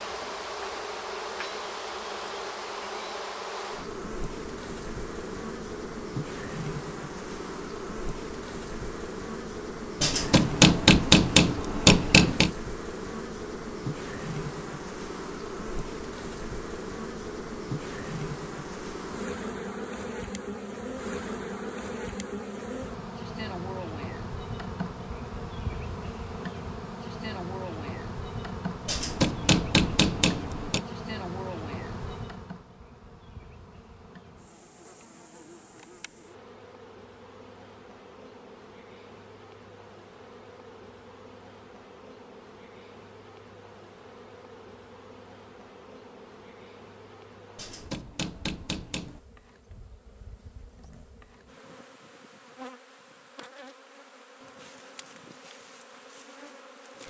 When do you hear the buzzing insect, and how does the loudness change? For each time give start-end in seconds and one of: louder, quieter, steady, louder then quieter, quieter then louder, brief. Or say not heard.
0.0-57.0 quieter.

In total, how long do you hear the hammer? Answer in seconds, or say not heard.
6 s.